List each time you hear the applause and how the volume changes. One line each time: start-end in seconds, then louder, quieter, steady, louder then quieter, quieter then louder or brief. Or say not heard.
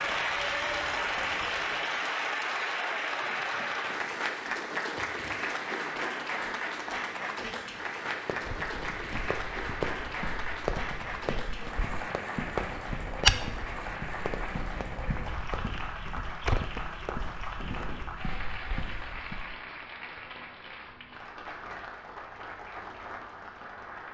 0.0-24.0 quieter.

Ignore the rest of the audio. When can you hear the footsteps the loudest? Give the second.
13 s.